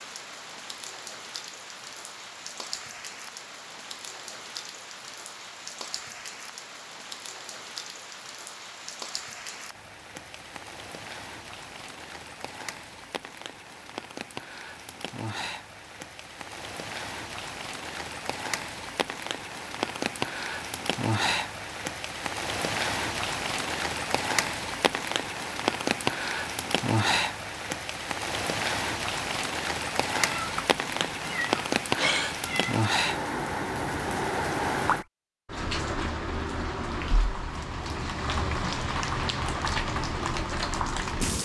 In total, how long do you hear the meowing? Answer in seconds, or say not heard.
3 s.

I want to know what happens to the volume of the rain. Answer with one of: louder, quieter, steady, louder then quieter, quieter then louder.
louder.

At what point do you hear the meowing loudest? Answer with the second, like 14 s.
32 s.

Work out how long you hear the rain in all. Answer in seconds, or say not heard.
41 s.